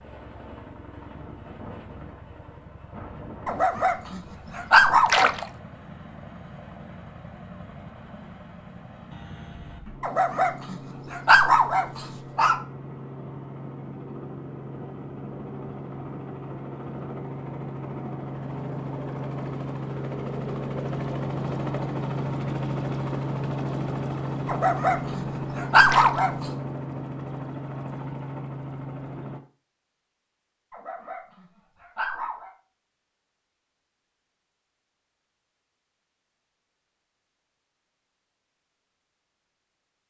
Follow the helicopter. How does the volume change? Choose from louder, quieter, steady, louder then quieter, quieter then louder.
louder.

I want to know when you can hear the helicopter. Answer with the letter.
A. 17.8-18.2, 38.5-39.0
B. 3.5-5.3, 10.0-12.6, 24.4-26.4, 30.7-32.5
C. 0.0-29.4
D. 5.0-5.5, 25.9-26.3
C.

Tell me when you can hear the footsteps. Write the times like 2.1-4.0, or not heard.
not heard.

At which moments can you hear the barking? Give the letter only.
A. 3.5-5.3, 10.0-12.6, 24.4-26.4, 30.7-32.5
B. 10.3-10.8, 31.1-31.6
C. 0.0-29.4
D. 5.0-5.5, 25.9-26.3
A.